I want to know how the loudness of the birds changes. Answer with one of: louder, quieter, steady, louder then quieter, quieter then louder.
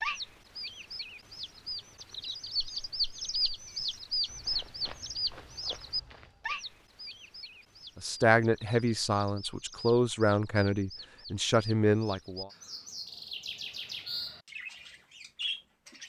quieter then louder.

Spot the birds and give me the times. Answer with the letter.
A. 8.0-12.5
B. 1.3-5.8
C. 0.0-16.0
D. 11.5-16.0
C.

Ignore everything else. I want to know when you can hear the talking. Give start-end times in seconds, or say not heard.
8.0-12.5.